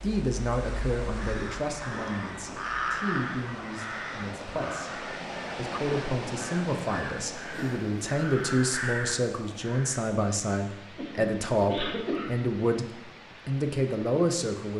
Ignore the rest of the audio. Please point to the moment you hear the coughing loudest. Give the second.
12 s.